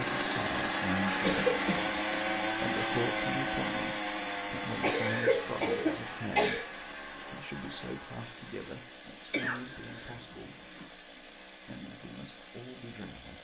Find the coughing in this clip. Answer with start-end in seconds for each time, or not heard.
1.2-1.9, 4.8-6.7, 9.3-10.8.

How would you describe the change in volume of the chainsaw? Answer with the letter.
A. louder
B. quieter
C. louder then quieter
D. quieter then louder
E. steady
B.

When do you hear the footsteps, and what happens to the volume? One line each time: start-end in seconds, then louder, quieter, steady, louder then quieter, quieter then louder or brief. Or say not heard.
not heard.